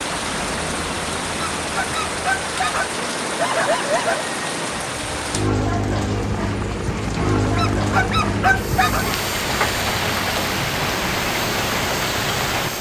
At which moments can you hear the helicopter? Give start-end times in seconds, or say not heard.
0.0-12.7.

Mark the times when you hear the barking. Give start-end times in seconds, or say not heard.
1.4-4.2, 7.5-9.1.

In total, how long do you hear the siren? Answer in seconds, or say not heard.
not heard.